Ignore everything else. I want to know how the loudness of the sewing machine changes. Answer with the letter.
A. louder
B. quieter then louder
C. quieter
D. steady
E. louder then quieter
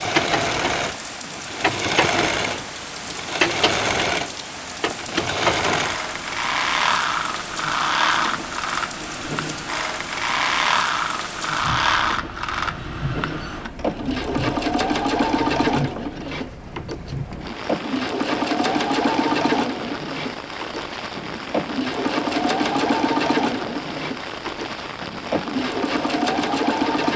D.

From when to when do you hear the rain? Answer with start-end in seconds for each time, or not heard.
0.0-27.1.